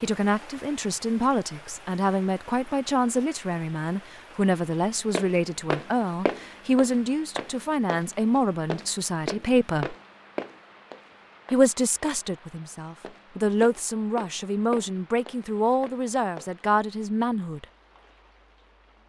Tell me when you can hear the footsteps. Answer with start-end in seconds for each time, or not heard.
5.2-16.6.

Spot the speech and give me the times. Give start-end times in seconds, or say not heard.
0.0-9.9, 11.5-17.6.